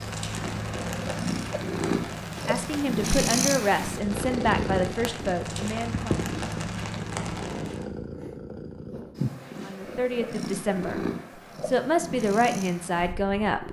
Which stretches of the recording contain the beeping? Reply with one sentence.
You can't hear the beeping here.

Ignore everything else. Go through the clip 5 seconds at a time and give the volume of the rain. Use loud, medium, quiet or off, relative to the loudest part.
loud, loud, off.